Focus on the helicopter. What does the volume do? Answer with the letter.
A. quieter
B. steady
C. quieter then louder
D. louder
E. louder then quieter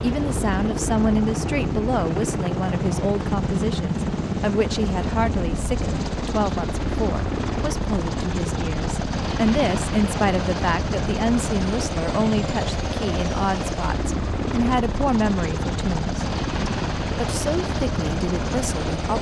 B.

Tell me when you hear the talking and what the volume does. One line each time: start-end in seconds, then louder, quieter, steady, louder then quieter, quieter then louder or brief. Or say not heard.
0.0-19.1 steady.